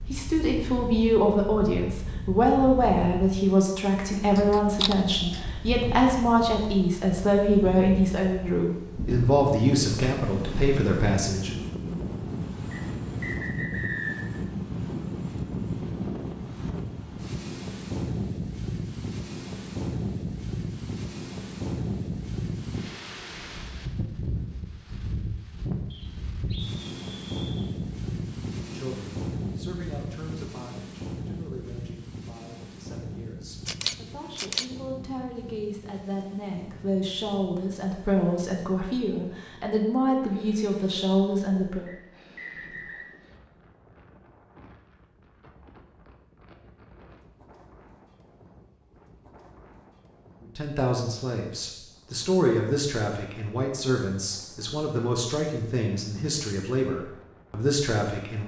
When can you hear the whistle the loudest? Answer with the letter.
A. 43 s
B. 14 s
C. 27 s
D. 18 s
B.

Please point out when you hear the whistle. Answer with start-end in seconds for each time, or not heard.
12.7-14.2, 25.9-27.7, 41.9-43.0.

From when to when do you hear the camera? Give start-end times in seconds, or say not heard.
4.1-5.5, 33.6-34.6.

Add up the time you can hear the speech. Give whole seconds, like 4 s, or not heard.
33 s.